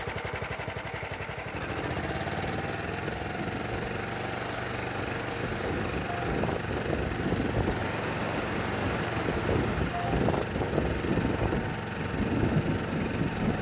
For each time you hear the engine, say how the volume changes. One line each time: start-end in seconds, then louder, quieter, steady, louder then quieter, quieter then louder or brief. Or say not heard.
0.0-13.5 steady.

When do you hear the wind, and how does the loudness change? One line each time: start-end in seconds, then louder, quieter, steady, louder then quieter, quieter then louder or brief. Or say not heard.
0.0-13.5 louder.